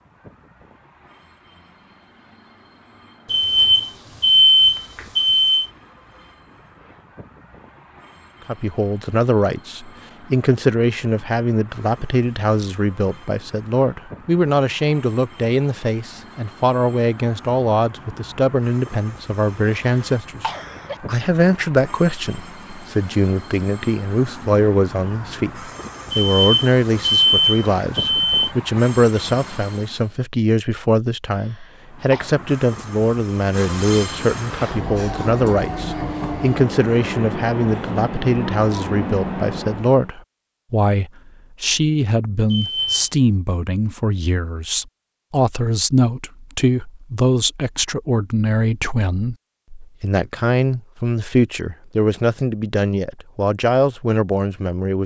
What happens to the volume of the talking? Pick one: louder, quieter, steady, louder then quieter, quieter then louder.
steady.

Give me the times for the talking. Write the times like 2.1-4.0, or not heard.
8.4-55.0.